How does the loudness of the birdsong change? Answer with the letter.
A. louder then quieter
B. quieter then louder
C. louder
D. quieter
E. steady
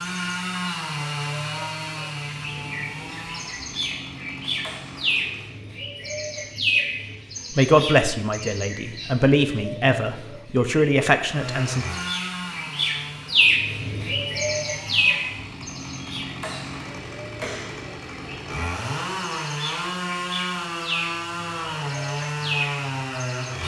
A.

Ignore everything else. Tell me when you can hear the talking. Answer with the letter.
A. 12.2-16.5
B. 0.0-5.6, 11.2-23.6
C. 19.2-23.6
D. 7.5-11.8
D.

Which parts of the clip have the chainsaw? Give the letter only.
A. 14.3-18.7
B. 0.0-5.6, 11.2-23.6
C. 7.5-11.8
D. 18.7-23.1
B.